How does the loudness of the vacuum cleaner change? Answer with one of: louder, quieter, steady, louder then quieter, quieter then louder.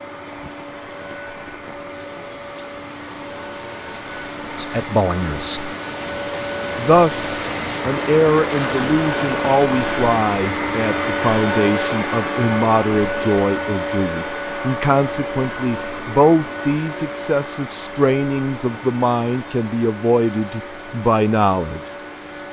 louder then quieter.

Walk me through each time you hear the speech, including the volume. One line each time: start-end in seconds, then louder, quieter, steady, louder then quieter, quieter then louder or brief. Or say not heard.
4.5-5.8 brief
6.8-21.8 steady.